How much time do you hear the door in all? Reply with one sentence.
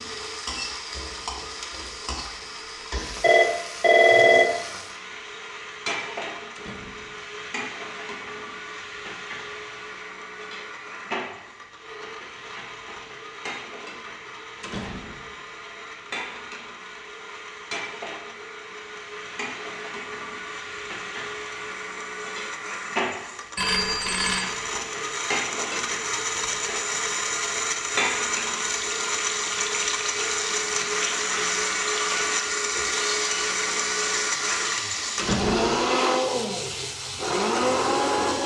You can hear the door for 2 seconds altogether.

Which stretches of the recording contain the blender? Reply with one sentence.
The blender can be heard from 0.0 to 38.4 s.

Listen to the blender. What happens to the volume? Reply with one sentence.
The volume of the blender goes up.